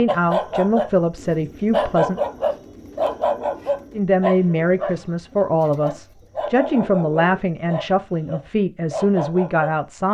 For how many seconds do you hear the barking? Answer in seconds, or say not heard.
9 s.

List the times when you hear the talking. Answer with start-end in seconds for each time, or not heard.
0.0-2.2, 3.9-10.0.